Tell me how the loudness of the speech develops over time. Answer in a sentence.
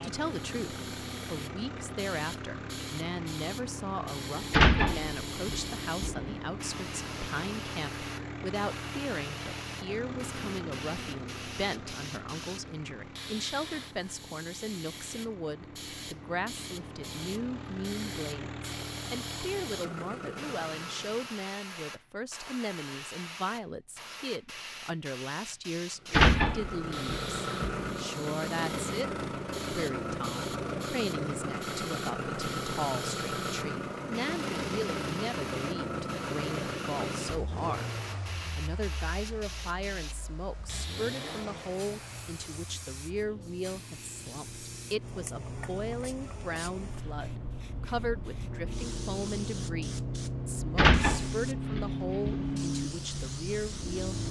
The loudness of the speech stays about the same.